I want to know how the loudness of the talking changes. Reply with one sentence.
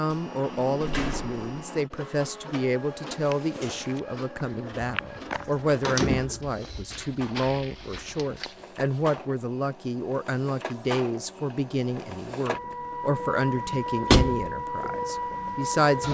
The volume of the talking stays about the same.